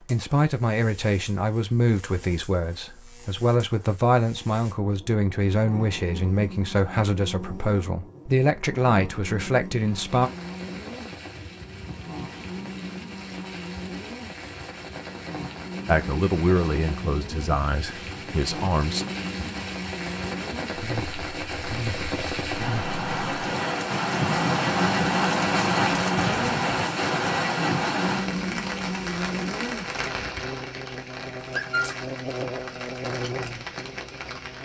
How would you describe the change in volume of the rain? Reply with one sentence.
The volume of the rain goes up, then down.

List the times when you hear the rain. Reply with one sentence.
You can hear the rain from 9.7 to 34.5 s.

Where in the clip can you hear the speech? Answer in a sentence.
You can hear the speech from 0.1 to 10.3 s and from 15.8 to 19.1 s.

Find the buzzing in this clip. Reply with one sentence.
You can hear the buzzing from 0.0 to 34.5 s.